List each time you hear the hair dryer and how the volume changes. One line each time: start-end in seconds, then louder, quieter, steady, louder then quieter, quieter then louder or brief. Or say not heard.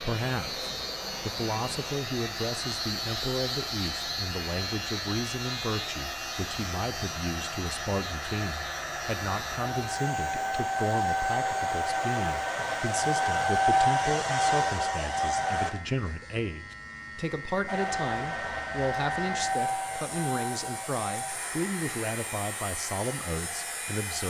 0.0-15.8 louder
17.6-24.2 quieter.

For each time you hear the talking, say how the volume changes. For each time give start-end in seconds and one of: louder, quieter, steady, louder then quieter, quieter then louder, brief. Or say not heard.
0.0-24.2 steady.